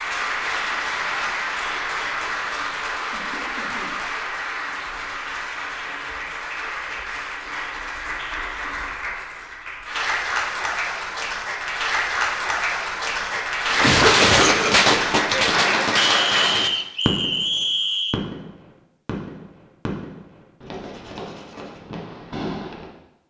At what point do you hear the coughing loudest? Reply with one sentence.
The loudest moment of the coughing is at 14 seconds.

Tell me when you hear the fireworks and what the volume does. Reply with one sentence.
You can hear the fireworks from 13.7 to 22.9 s, getting quieter.